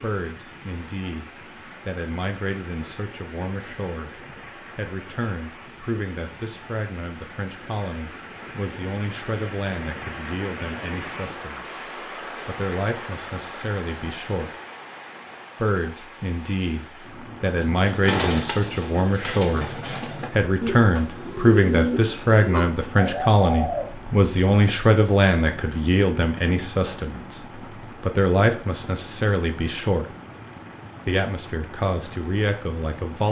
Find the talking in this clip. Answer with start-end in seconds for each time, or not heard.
0.0-11.8, 12.4-14.5, 15.6-30.1, 31.1-33.2.